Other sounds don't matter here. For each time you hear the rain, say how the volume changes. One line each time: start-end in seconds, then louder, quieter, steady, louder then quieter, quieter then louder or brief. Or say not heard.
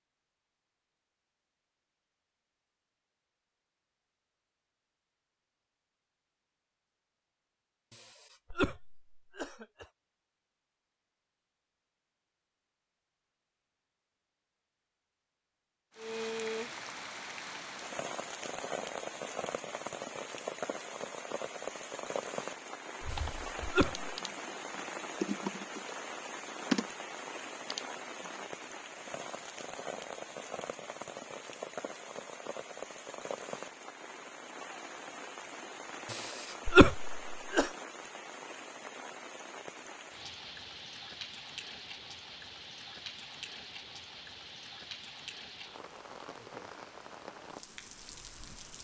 15.9-48.7 quieter.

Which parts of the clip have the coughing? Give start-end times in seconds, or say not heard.
7.9-9.8, 23.1-24.1, 36.1-37.7.